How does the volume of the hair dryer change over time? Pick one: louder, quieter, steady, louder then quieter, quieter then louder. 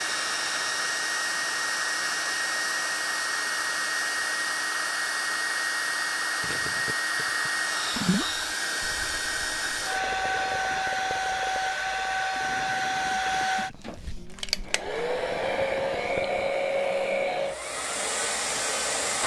steady.